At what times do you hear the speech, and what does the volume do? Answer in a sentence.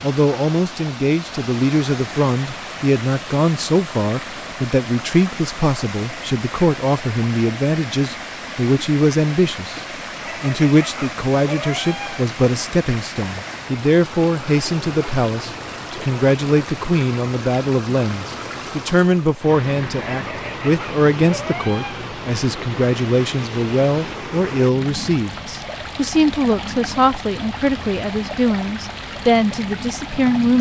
The speech can be heard from 0.0 to 9.8 s, at a steady volume; and from 10.4 to 30.5 s, at a steady volume.